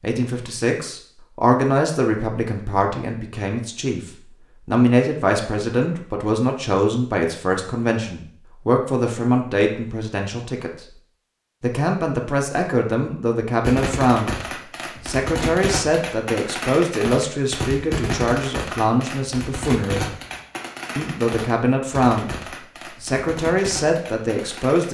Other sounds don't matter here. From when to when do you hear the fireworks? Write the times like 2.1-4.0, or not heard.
13.6-24.8.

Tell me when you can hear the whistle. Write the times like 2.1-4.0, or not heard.
not heard.